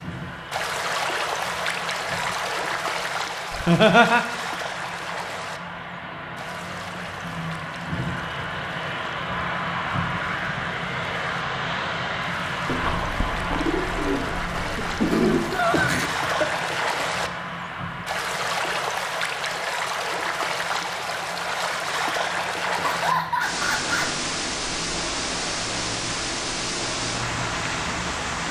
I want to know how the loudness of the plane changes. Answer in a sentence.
The volume of the plane goes up, then down.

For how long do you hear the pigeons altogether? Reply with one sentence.
You can hear the pigeons for 3 seconds altogether.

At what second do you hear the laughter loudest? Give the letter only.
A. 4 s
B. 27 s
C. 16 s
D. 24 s
A.